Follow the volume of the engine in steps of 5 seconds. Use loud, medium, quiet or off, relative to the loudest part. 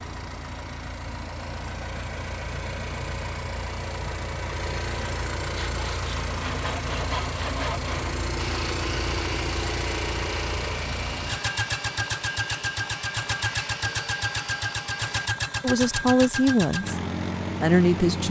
medium, loud, loud, loud.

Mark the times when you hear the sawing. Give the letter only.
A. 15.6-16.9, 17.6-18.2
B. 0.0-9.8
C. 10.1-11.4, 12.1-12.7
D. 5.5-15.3
D.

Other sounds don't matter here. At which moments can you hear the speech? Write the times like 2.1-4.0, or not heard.
15.6-16.9, 17.6-18.2.